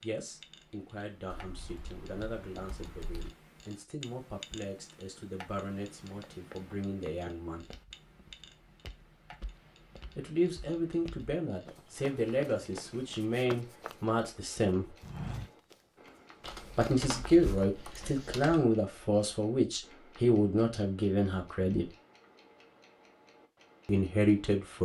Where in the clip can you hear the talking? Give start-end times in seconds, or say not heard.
0.0-7.8, 10.2-14.9, 16.8-21.9, 23.9-24.8.